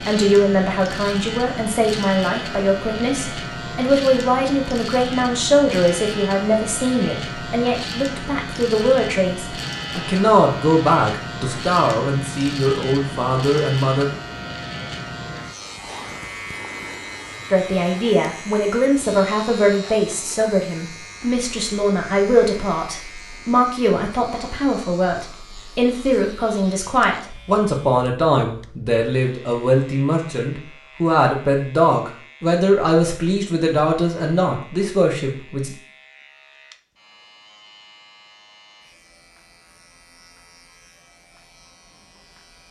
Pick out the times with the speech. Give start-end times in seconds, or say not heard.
0.1-14.1, 17.5-35.8.